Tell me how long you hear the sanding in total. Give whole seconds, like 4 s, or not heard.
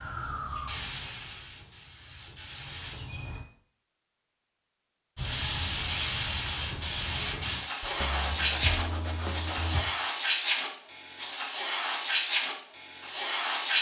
2 s.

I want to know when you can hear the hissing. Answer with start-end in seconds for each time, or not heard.
0.0-3.4, 5.2-13.7.